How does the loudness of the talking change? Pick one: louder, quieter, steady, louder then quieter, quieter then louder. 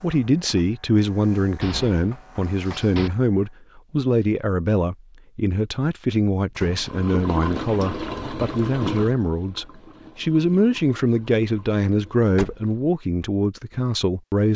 steady.